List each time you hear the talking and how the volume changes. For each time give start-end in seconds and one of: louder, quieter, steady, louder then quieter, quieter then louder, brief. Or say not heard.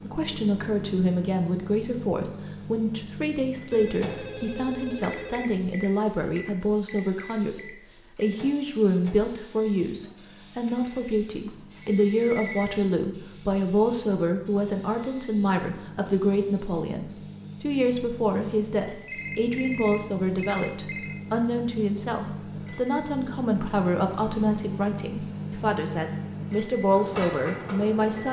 0.0-28.2 steady.